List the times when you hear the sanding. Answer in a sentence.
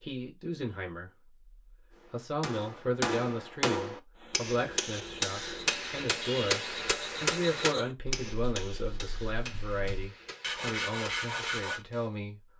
You can hear the sanding from 4.2 to 11.8 s.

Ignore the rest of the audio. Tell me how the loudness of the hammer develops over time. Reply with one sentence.
The loudness of the hammer goes down.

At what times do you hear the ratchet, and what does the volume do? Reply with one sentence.
The ratchet can't be heard in this clip.